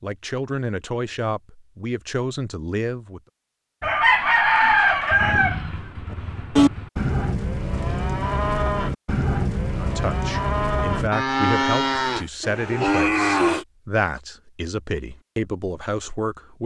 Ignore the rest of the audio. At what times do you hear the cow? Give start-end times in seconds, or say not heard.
6.1-13.7.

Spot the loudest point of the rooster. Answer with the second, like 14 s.
5 s.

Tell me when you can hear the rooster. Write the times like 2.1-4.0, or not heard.
3.8-6.9.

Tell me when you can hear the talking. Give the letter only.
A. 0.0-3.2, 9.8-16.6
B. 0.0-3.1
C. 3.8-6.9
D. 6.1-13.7
A.